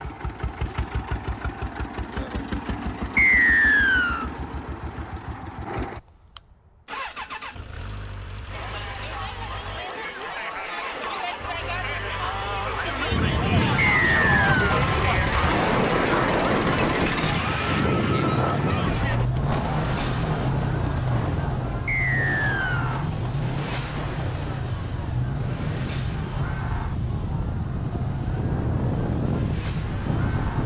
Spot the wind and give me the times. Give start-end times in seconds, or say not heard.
13.1-30.6.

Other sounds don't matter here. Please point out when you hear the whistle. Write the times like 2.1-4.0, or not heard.
3.1-4.3, 13.8-14.8, 21.9-23.0.